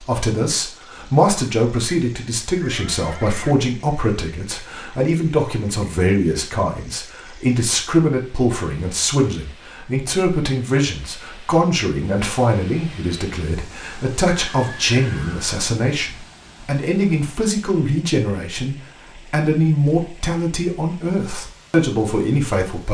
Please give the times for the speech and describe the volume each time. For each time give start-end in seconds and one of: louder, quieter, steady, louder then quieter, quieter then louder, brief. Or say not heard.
0.0-22.8 steady.